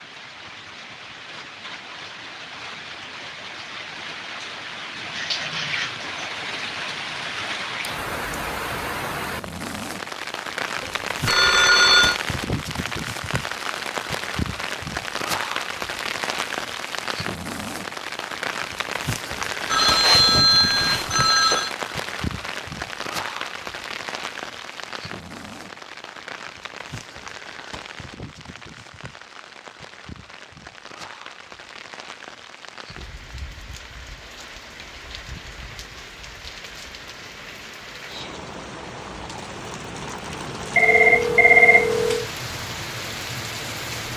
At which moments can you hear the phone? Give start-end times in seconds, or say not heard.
10.8-12.2, 19.7-21.7, 40.8-42.2.